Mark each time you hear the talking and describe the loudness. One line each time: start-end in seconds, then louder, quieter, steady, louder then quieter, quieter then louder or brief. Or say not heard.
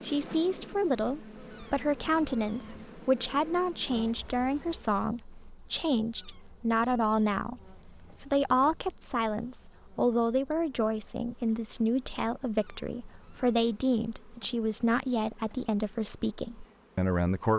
0.0-17.5 steady.